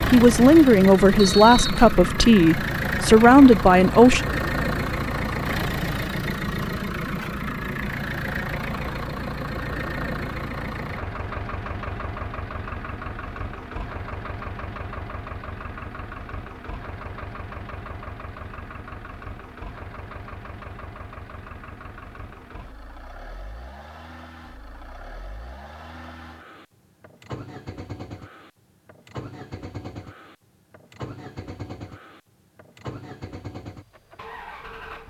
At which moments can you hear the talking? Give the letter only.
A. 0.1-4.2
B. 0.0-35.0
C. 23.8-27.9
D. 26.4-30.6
A.